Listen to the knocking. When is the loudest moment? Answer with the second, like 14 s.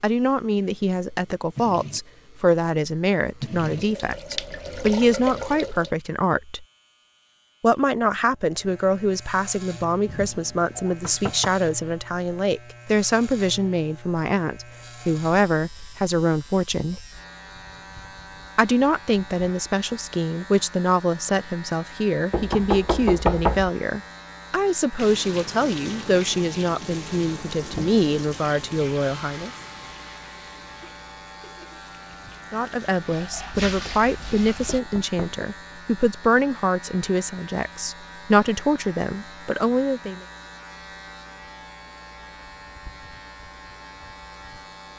23 s.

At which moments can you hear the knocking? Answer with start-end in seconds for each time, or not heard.
10.1-11.5, 22.3-23.7, 34.8-35.5.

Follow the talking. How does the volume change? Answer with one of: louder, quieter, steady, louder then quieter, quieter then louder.
steady.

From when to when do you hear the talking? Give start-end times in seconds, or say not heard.
0.0-6.7, 7.6-17.0, 18.6-29.5, 32.5-40.2.